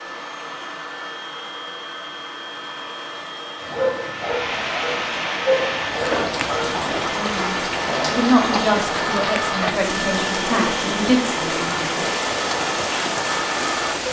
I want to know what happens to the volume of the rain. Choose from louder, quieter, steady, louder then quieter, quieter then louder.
steady.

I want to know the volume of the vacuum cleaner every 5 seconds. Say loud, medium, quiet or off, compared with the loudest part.
medium, loud, loud.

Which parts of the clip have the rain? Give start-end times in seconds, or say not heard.
4.0-14.0.